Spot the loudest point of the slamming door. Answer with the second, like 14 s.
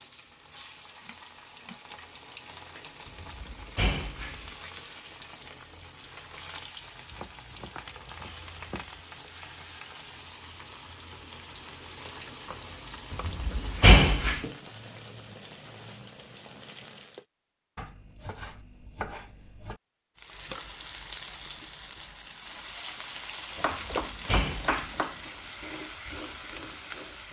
14 s.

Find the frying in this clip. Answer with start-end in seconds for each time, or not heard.
0.0-17.2, 20.1-27.2.